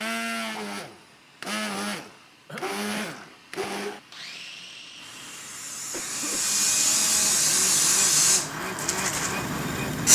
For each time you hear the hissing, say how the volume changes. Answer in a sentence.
You can hear the hissing from 0.0 to 10.1 s, getting louder.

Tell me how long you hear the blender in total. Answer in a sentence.
The blender can be heard for 10 seconds in total.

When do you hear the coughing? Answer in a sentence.
You can hear the coughing from 2.5 to 3.2 s and from 5.9 to 6.5 s.